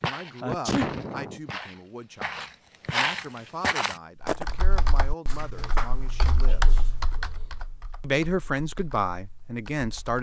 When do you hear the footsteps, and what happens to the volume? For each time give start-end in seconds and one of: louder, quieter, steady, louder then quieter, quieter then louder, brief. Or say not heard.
0.0-4.5 louder.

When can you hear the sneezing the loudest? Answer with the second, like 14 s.
1 s.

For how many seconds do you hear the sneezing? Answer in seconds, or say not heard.
2 s.